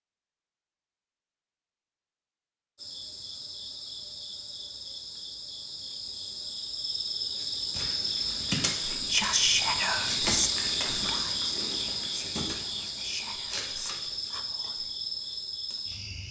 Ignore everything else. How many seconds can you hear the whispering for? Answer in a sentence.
The whispering can be heard for 6 seconds in total.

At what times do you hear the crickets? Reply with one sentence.
You can hear the crickets from 2.8 to 16.2 s.